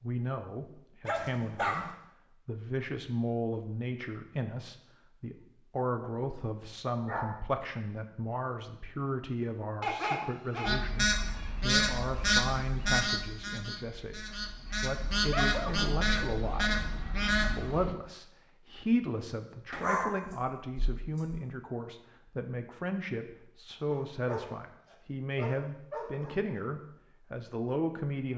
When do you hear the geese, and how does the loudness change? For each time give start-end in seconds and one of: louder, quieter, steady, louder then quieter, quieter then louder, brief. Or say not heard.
10.7-17.9 quieter then louder.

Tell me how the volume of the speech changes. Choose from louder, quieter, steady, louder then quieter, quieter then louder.
steady.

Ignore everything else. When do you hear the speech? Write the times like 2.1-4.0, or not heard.
0.0-28.3.